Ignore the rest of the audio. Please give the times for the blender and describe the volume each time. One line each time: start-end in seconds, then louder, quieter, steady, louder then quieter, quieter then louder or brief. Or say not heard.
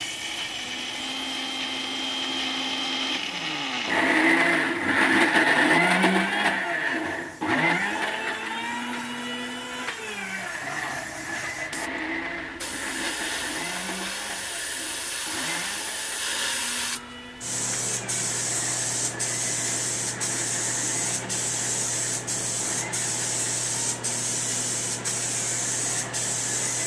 0.0-26.8 quieter.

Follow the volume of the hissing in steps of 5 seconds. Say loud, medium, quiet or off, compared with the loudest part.
quiet, quiet, medium, loud, loud, loud.